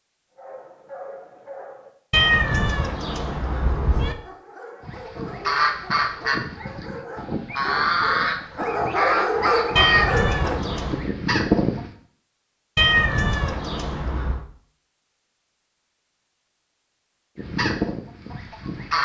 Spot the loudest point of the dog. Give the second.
9 s.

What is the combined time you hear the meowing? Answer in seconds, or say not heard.
5 s.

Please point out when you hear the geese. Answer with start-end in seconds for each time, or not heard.
4.8-11.9, 17.4-19.0.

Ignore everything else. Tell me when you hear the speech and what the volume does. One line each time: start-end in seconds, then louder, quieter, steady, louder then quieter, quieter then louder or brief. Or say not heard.
not heard.